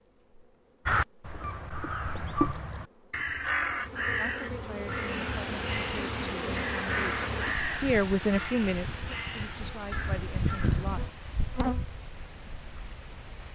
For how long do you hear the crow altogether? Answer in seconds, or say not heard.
10 s.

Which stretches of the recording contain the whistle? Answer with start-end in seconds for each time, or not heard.
not heard.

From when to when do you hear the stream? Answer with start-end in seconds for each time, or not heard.
4.8-13.5.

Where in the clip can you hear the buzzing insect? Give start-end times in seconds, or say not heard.
0.1-13.5.